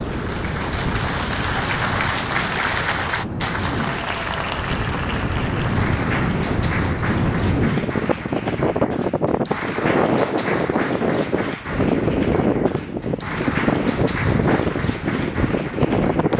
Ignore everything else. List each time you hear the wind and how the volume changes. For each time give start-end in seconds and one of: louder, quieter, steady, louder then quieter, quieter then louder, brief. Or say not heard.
0.0-16.3 louder.